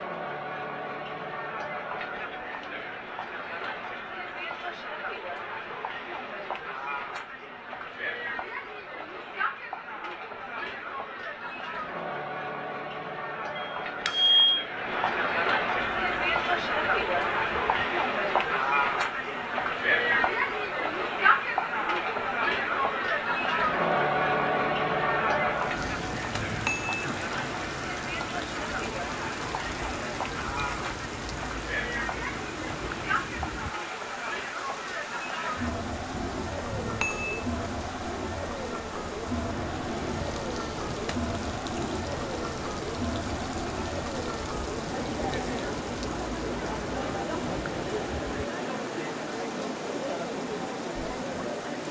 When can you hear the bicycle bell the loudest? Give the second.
14 s.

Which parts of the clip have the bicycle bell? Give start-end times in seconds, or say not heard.
13.6-14.7, 25.8-27.1, 36.1-37.5.